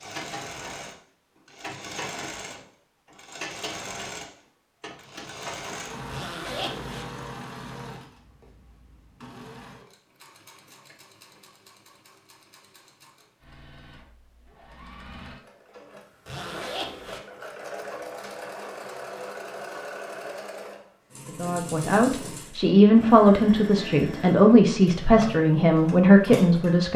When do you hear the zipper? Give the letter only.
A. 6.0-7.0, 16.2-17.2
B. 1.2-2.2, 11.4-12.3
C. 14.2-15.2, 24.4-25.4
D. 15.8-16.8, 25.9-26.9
A.